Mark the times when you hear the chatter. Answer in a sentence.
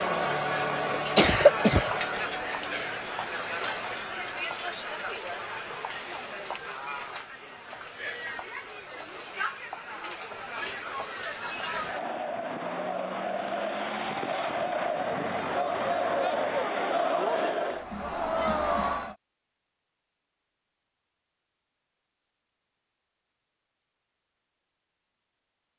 The chatter can be heard from 0.0 to 19.1 s.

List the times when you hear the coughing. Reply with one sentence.
The coughing can be heard from 0.9 to 1.9 s.